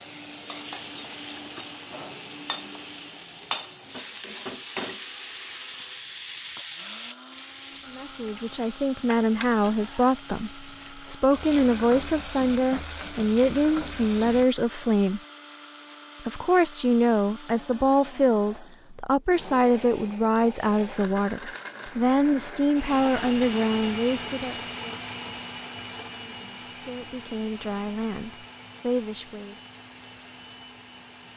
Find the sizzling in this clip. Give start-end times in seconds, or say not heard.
0.0-14.4.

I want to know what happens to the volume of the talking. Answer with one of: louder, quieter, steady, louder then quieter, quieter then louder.
quieter.